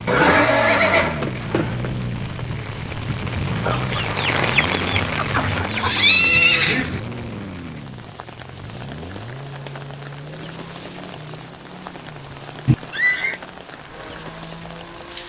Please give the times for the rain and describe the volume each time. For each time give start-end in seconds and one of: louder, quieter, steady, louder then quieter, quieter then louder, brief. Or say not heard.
0.0-15.2 louder then quieter.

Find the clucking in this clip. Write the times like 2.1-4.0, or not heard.
3.6-6.0.